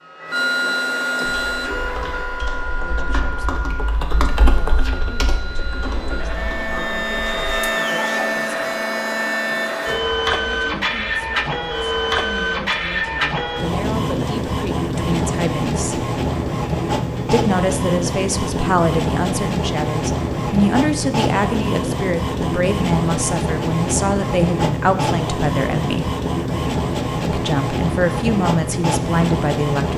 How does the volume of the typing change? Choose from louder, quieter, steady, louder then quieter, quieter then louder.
louder then quieter.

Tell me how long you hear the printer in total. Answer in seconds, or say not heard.
30 s.